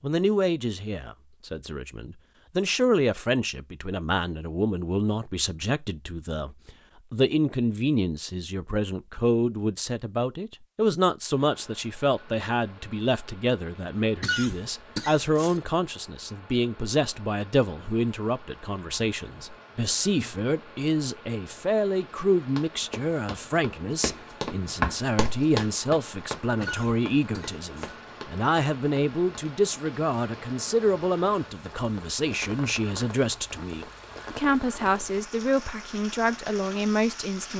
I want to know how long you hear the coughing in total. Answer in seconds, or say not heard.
3 s.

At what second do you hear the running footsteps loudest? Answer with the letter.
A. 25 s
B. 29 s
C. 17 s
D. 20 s
A.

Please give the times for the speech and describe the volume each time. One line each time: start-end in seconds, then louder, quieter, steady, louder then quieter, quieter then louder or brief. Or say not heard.
0.0-37.5 steady.